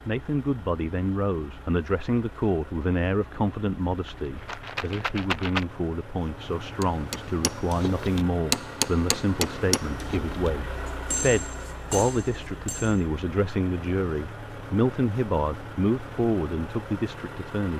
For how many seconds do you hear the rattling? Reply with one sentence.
The rattling can be heard for 2 seconds in total.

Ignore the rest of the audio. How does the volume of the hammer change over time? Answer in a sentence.
The volume of the hammer goes up, then down.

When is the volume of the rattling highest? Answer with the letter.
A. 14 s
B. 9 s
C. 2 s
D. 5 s
D.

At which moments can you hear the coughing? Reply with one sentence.
The coughing can't be heard in this clip.